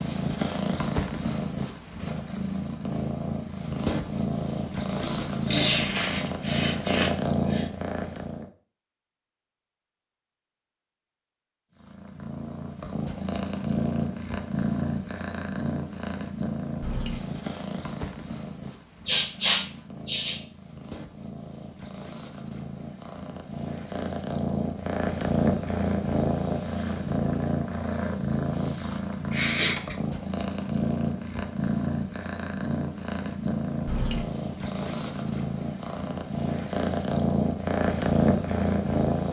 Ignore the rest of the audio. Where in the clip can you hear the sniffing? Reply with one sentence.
You can hear the sniffing from 5.0 to 7.7 s, from 19.1 to 20.4 s and from 28.9 to 29.9 s.